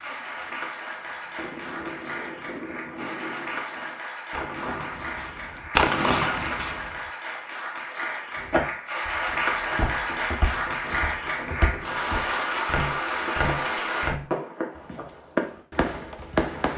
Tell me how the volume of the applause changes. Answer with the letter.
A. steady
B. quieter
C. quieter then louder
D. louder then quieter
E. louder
E.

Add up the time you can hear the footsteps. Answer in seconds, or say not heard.
7 s.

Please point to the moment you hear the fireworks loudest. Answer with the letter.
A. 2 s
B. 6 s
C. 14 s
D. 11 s
B.